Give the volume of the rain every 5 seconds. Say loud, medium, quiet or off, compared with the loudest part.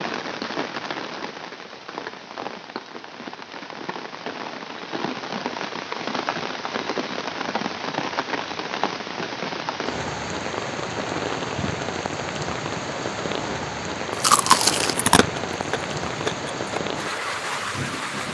medium, loud, loud, loud.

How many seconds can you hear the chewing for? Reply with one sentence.
You can hear the chewing for 3 seconds altogether.